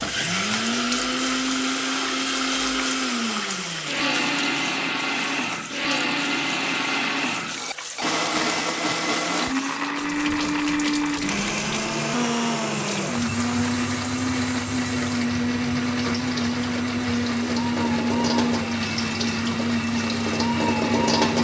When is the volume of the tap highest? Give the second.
21 s.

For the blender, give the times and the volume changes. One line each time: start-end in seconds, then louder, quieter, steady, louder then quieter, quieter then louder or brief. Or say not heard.
0.0-21.3 steady.